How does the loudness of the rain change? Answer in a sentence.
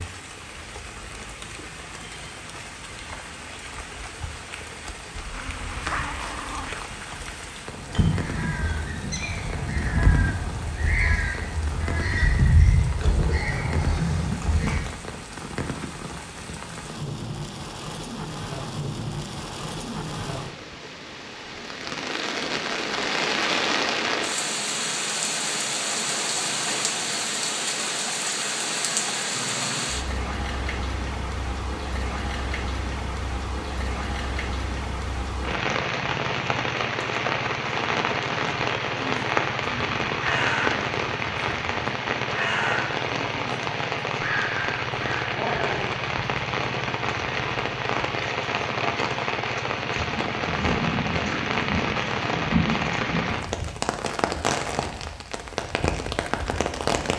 The volume of the rain goes up.